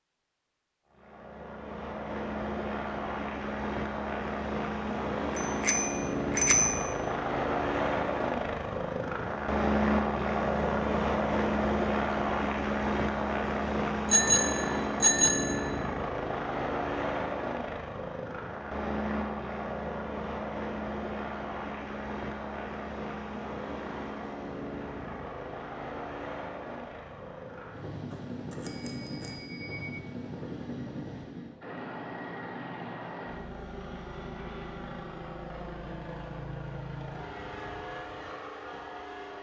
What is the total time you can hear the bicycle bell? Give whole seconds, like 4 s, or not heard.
5 s.